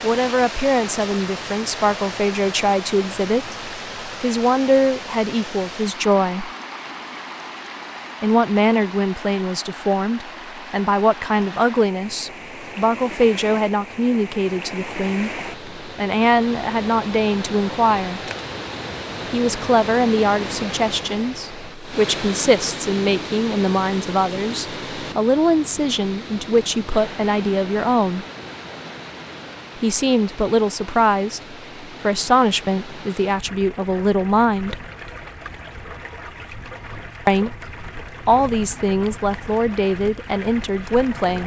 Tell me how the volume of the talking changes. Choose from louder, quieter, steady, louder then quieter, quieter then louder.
steady.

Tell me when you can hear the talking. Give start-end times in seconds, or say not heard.
0.0-6.5, 8.2-18.2, 19.3-28.2, 29.8-34.8, 37.2-41.4.